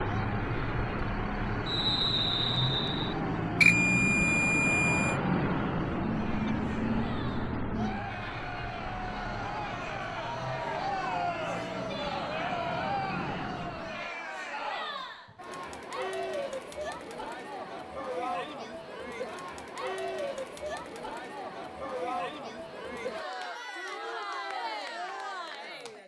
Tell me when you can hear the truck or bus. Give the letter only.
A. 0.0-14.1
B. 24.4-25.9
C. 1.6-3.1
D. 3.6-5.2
A.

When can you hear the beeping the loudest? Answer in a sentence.
The loudest moment of the beeping is at 4 seconds.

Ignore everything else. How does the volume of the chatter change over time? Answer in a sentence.
The volume of the chatter goes up.